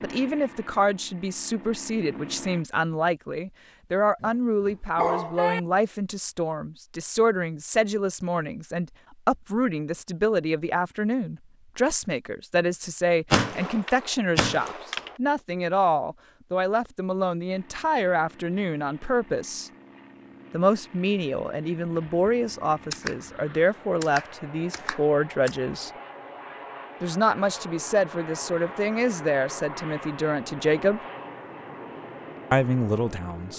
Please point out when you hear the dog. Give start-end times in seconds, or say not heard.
4.2-5.6.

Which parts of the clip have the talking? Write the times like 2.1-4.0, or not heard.
0.0-19.7, 20.5-25.9, 27.0-31.0, 32.5-33.5.